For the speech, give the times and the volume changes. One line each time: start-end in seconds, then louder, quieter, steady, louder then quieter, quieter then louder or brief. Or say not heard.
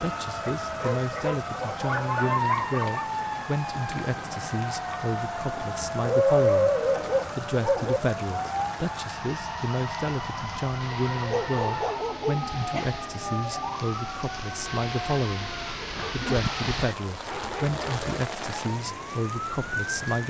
0.0-6.8 steady
7.3-20.2 steady.